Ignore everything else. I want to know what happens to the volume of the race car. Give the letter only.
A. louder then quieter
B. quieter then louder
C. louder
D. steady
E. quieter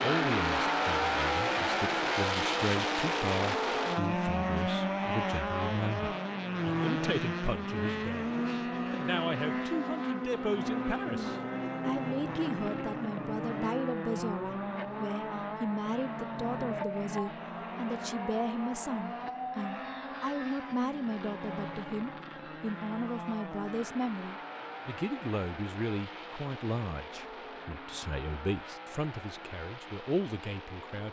E.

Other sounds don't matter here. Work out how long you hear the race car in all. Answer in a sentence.
You can hear the race car for 31 seconds altogether.